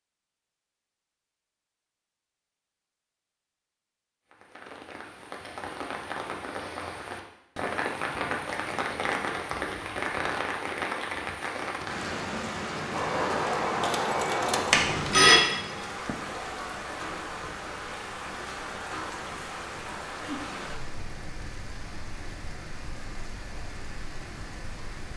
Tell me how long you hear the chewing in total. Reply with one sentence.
You can't hear the chewing here.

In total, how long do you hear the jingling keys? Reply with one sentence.
The jingling keys can be heard for 2 seconds in total.